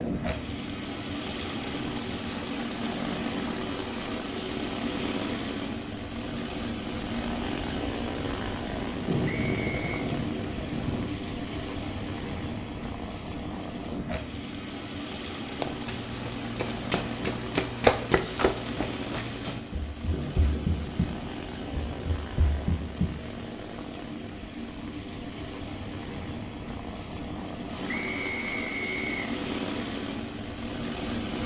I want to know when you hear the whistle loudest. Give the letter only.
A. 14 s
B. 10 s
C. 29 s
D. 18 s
C.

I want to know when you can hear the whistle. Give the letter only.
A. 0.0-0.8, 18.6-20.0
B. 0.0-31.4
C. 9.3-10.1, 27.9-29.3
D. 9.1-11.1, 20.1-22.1
C.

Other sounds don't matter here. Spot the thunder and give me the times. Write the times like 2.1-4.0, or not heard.
9.1-11.1, 20.1-22.1.